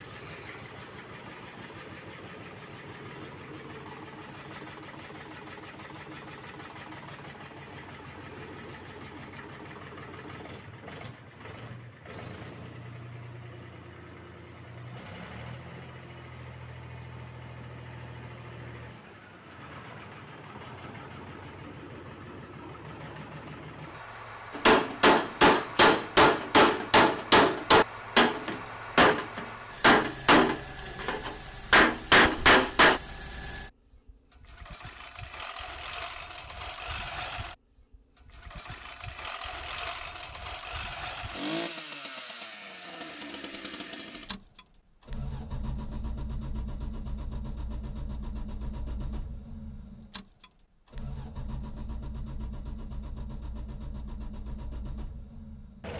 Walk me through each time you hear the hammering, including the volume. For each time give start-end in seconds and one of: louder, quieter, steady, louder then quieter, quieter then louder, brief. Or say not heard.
24.6-33.0 steady.